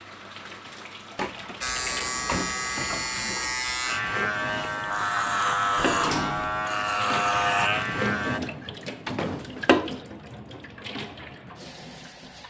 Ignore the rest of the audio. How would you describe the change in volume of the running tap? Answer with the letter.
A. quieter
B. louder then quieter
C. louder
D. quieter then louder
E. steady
C.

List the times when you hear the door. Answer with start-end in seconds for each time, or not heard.
1.1-2.6, 5.8-6.6, 9.1-9.9.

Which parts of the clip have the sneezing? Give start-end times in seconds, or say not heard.
not heard.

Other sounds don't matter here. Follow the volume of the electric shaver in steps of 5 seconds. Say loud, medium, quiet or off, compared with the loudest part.
loud, loud, off.